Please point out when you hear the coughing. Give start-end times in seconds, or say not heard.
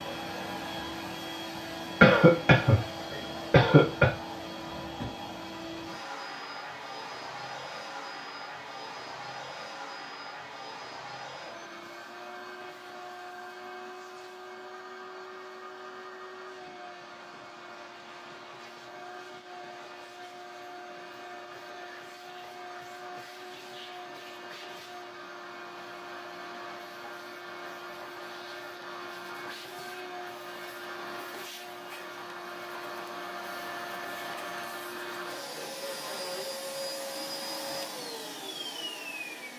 2.0-4.1.